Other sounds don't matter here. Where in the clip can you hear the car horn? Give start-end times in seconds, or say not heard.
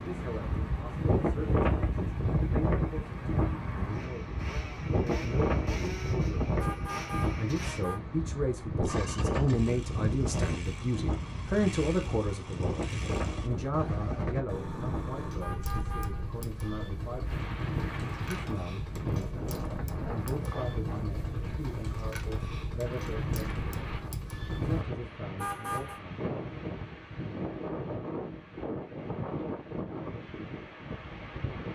6.6-8.0, 15.4-16.7, 25.4-26.0.